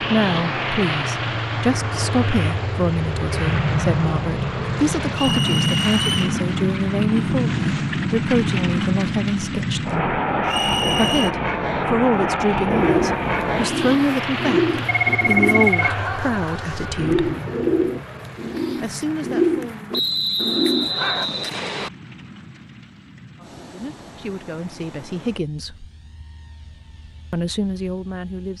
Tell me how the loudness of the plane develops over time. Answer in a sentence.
The volume of the plane goes down.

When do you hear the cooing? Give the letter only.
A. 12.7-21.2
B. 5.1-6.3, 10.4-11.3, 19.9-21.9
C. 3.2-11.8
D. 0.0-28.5
A.